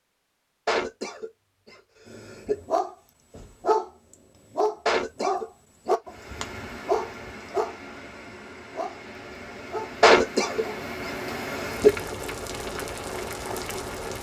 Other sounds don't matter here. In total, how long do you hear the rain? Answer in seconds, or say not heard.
8 s.